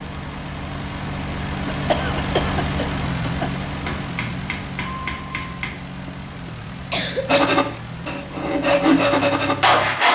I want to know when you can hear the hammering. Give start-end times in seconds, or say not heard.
3.9-5.7.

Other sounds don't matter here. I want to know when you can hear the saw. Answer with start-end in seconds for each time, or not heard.
7.2-10.1.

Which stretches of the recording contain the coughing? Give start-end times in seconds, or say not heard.
1.6-3.5, 6.0-7.6.